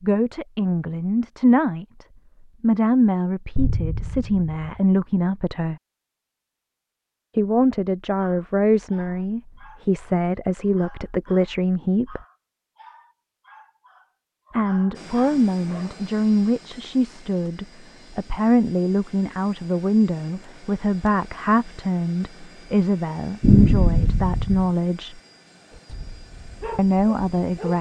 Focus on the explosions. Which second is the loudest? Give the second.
24 s.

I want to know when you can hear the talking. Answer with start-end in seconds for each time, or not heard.
0.0-5.8, 7.3-12.2, 14.5-25.2, 26.8-27.7.